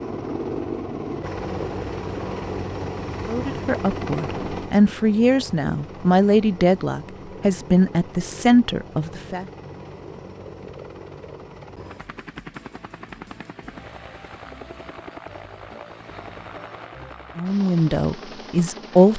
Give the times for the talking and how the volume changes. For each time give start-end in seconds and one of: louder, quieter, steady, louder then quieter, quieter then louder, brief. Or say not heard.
3.2-9.4 louder
17.4-19.1 brief.